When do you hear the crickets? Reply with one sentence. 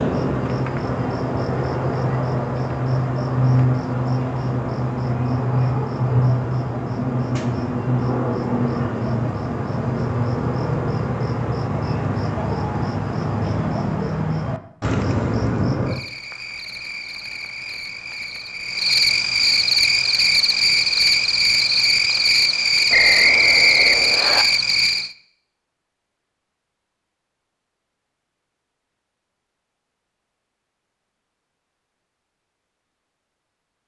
The crickets can be heard from 0.0 to 25.1 s.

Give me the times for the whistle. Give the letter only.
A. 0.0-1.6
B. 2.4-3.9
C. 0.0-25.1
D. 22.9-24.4
D.